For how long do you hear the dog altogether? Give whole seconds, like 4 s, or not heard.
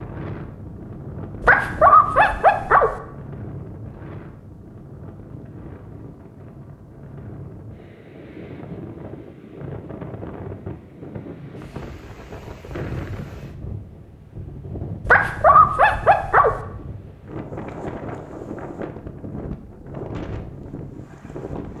3 s.